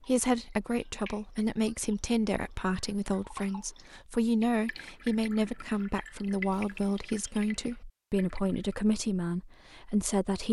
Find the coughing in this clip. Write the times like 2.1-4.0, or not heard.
not heard.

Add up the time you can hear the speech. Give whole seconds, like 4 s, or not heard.
10 s.